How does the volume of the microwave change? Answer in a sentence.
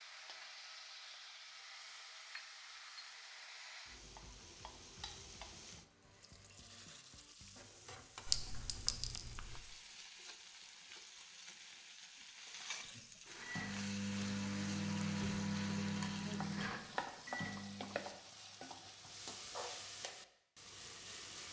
The loudness of the microwave goes down.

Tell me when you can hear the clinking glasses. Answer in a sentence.
The clinking glasses can be heard from 8.2 to 9.6 s.